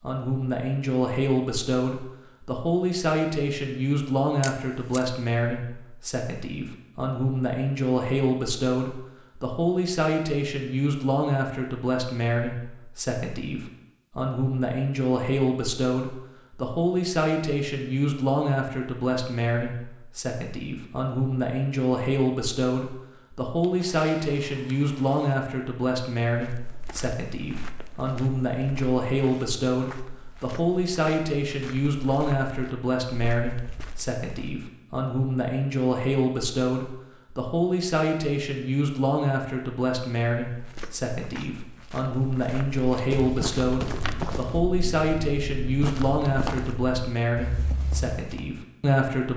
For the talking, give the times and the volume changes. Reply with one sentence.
You can hear the talking from 0.0 to 49.3 s, at a steady volume.